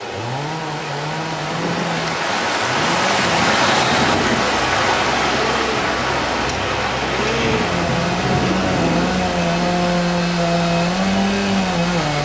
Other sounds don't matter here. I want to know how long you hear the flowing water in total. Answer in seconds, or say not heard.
12 s.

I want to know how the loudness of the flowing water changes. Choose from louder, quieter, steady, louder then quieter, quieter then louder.
louder then quieter.